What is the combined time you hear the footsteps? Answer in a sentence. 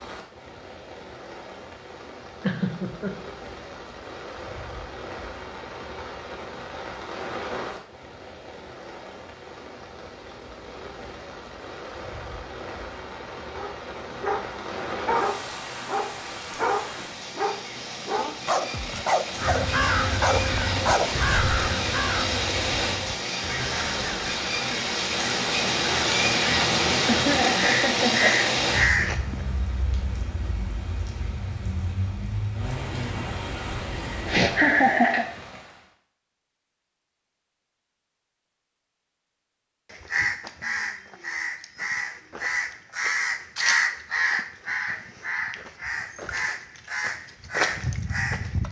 You can't hear the footsteps here.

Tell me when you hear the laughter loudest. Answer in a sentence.
The volume of the laughter peaks at 35 seconds.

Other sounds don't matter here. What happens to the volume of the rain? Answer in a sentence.
The loudness of the rain goes up, then down.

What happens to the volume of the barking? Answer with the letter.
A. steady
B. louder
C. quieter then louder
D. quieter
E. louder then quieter
A.